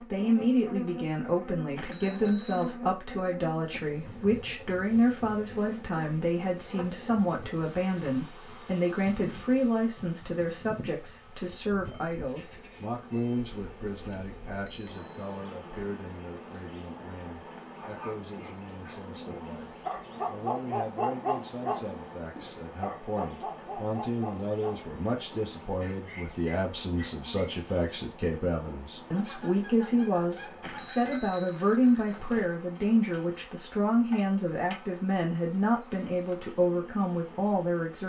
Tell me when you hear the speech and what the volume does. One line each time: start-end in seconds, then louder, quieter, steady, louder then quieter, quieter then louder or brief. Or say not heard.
0.0-38.0 quieter then louder.